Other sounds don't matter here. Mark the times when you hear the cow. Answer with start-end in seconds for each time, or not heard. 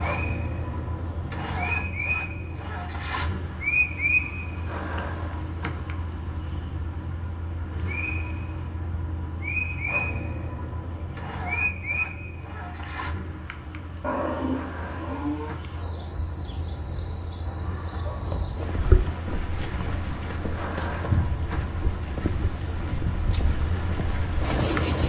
14.0-15.6.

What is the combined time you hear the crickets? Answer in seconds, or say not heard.
25 s.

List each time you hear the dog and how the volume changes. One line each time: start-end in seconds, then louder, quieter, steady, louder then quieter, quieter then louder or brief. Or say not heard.
not heard.